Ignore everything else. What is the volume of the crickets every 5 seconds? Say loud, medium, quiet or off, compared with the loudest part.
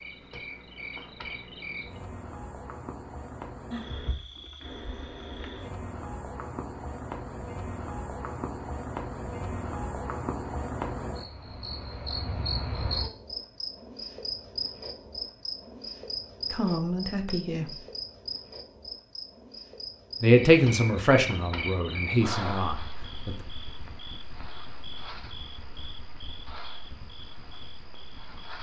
medium, loud, loud, loud, loud, medium.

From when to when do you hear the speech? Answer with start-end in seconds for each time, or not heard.
16.5-17.8, 20.2-23.4.